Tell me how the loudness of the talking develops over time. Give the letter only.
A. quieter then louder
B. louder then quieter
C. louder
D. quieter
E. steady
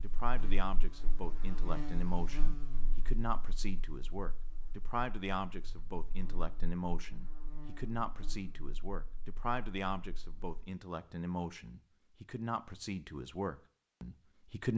E.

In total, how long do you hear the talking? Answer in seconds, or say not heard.
15 s.